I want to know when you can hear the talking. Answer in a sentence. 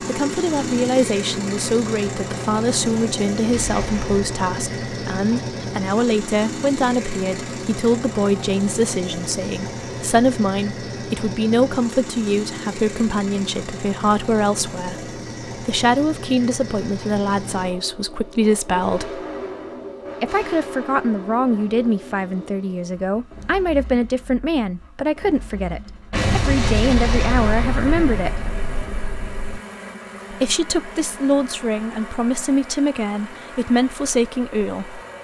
The talking can be heard from 0.0 to 19.2 s, from 20.2 to 28.4 s and from 30.3 to 35.0 s.